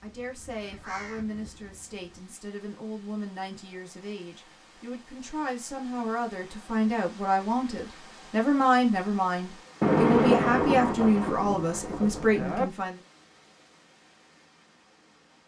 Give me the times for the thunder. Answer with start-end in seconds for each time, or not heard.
9.8-12.7.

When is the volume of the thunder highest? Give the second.
10 s.